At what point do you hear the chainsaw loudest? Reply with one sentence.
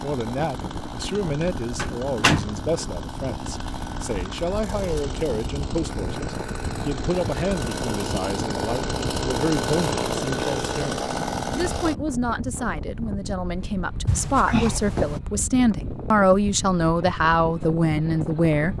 The loudest moment of the chainsaw is at 10 seconds.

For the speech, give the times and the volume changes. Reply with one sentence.
You can hear the speech from 0.0 to 18.7 s, getting louder.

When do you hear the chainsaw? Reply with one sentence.
You can hear the chainsaw from 0.0 to 11.9 s.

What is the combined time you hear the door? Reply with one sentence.
The door can be heard for 2 seconds in total.